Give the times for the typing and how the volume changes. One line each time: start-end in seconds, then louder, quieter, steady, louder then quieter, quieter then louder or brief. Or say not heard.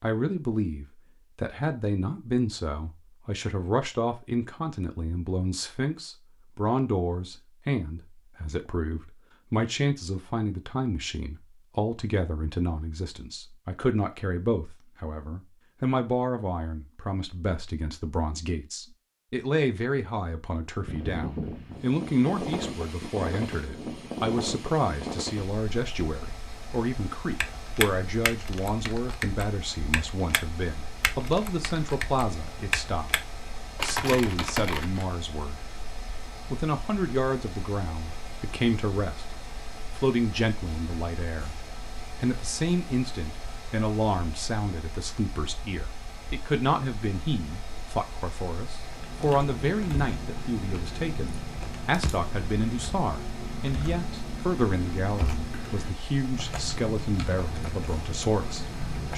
27.4-35.0 quieter then louder
48.9-59.1 steady.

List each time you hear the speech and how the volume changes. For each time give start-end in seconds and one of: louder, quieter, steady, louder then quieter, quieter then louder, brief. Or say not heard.
0.0-35.8 steady
36.5-39.4 brief
40.0-59.1 steady.